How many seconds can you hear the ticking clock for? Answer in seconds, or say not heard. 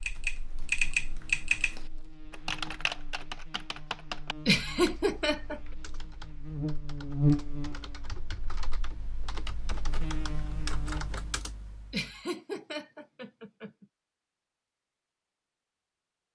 not heard.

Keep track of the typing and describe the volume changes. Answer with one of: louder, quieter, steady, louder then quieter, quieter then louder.
quieter then louder.